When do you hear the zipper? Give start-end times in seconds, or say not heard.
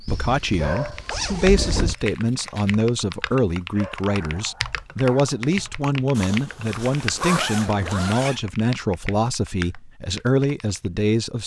0.1-1.9, 6.2-8.4.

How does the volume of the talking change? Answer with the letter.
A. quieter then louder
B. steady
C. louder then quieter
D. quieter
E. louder
B.